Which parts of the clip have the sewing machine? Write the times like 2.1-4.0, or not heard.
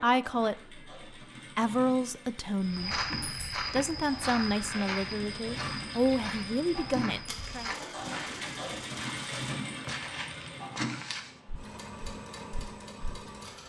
0.0-13.6.